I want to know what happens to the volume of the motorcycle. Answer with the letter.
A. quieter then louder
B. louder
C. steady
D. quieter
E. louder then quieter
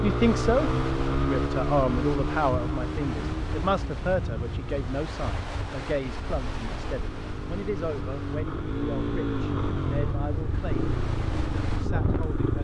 A.